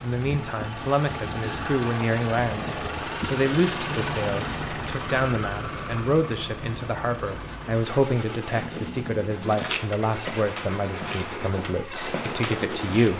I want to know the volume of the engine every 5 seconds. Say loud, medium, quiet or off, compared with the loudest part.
loud, medium, medium.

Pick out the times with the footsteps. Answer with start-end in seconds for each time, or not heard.
9.4-13.1.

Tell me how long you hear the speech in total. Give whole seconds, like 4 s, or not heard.
13 s.